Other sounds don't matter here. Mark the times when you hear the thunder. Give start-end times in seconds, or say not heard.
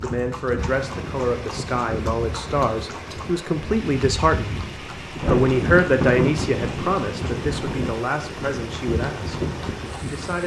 5.2-7.8.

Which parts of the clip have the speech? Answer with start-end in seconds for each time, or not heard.
0.0-9.3, 10.0-10.4.